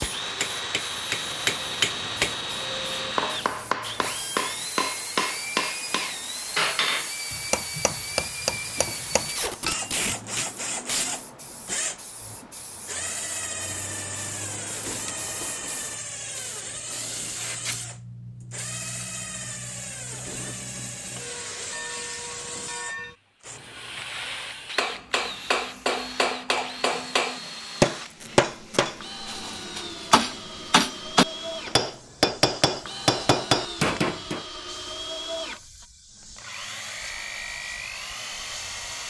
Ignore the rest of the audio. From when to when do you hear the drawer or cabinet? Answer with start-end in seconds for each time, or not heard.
not heard.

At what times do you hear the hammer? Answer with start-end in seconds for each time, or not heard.
0.0-9.9, 24.8-34.5.